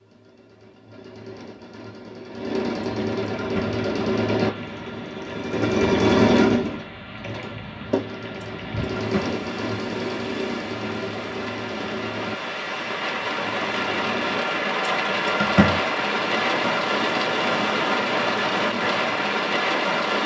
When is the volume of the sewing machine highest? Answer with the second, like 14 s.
6 s.